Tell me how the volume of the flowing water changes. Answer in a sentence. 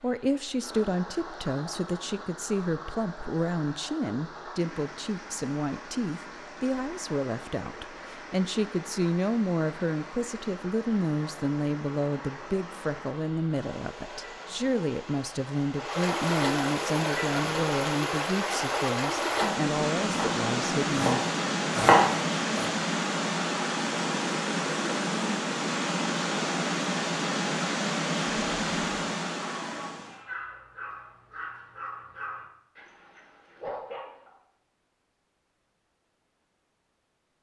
The loudness of the flowing water goes up.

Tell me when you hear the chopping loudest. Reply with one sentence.
The loudest moment of the chopping is at 22 seconds.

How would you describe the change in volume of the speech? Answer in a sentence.
The volume of the speech stays about the same.